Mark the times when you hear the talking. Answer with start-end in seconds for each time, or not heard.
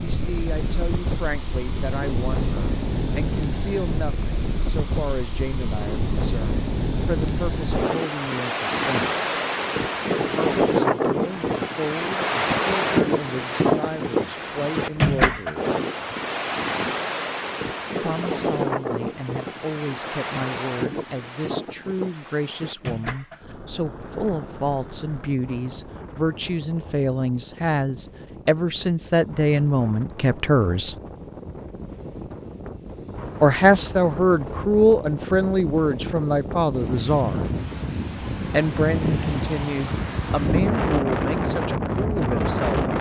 0.0-9.2, 10.2-15.8, 18.0-30.9, 33.4-37.4, 38.5-42.9.